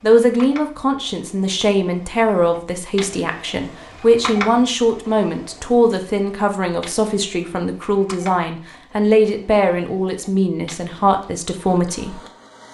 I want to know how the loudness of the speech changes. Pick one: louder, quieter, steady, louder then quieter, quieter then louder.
steady.